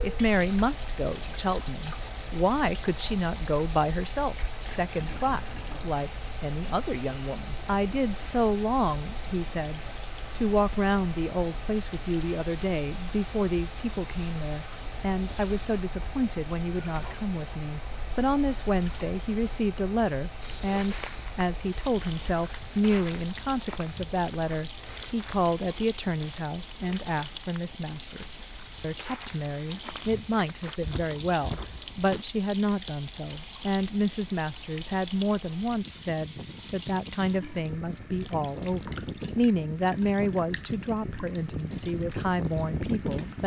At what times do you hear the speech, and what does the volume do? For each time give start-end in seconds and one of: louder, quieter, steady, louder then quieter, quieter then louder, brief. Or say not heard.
0.0-43.4 steady.